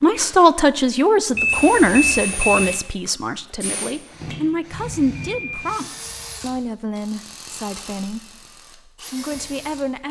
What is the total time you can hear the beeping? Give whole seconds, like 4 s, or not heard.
2 s.